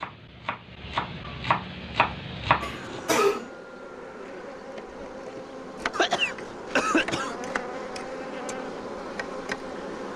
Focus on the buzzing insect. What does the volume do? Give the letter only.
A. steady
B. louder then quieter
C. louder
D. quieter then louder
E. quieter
C.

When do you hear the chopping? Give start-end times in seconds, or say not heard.
0.0-3.0.